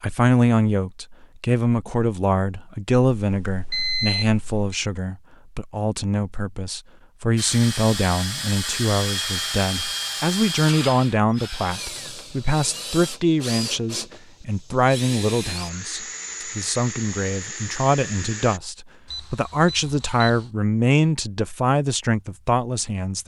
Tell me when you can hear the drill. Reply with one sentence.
The drill can be heard from 7.3 to 18.6 s.